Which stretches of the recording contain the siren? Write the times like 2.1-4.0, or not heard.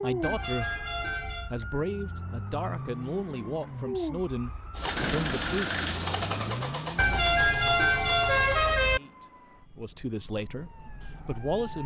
0.0-11.8.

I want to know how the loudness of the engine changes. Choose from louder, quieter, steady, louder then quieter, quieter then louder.
quieter.